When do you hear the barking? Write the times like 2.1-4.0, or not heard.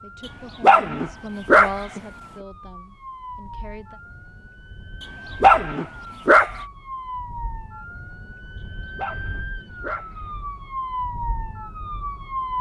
0.6-2.0, 5.4-6.6, 8.9-10.3.